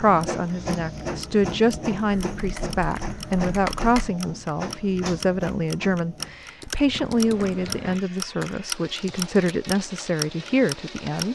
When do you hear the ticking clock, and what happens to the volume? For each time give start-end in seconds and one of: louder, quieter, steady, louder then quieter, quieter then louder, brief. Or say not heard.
0.0-11.2 louder.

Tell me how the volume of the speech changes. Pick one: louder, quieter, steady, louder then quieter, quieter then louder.
steady.